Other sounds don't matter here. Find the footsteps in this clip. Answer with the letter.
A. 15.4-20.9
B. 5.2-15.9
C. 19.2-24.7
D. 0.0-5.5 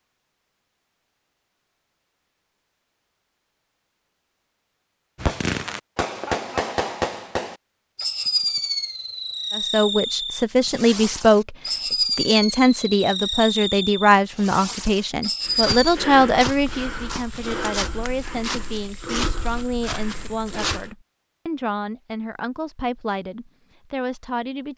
A.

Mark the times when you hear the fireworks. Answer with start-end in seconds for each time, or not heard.
5.2-15.9.